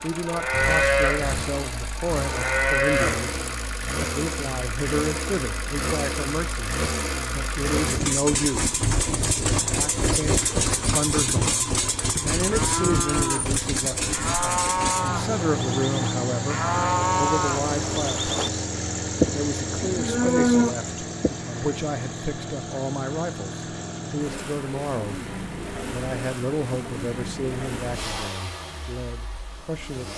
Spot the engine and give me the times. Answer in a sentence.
You can hear the engine from 0.0 to 30.1 s.